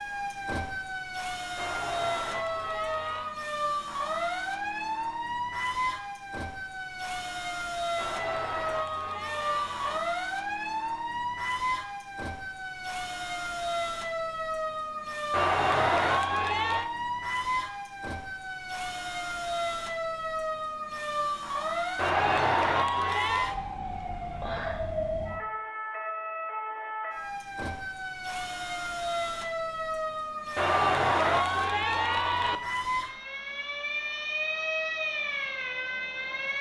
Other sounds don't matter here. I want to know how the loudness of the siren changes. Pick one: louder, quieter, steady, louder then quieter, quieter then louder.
steady.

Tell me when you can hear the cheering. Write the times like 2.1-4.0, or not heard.
1.6-3.4, 8.0-10.0, 15.3-16.9, 21.9-23.6, 30.6-32.6.